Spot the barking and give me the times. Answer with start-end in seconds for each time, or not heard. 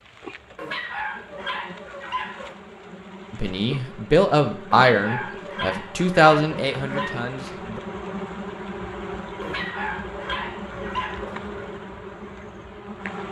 0.6-2.6, 4.8-7.2, 9.4-11.7.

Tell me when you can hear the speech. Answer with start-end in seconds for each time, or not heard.
3.3-7.8.